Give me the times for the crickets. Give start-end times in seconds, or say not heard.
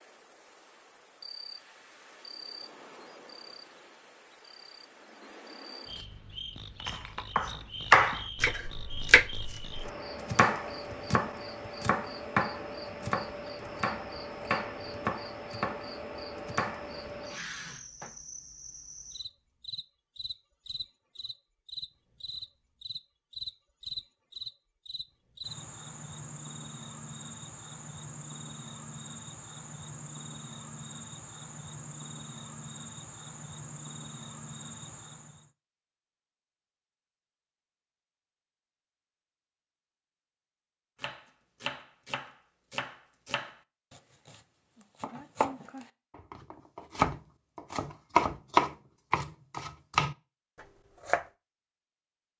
0.0-35.5.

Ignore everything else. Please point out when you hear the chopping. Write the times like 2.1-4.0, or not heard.
6.8-17.1, 41.0-51.2.